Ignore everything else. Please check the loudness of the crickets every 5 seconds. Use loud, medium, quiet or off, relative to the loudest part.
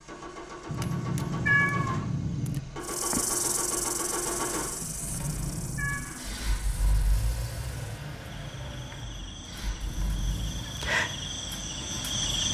loud, quiet, loud.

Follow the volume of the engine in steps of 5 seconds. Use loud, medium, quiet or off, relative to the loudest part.
loud, loud, medium.